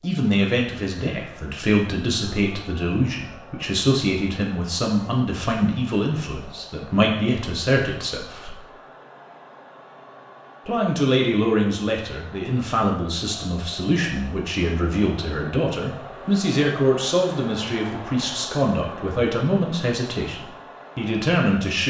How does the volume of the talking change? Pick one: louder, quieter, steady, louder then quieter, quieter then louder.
steady.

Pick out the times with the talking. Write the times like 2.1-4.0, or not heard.
0.0-8.6, 10.7-21.8.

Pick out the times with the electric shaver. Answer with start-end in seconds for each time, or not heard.
not heard.